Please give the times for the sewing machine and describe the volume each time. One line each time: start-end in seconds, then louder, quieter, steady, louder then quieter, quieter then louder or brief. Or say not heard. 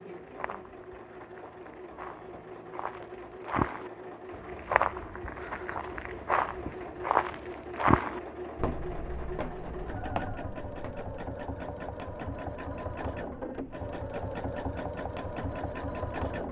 0.0-16.4 louder.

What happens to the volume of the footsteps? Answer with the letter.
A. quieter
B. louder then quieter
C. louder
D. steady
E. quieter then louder
B.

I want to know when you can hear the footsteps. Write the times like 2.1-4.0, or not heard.
0.2-11.1.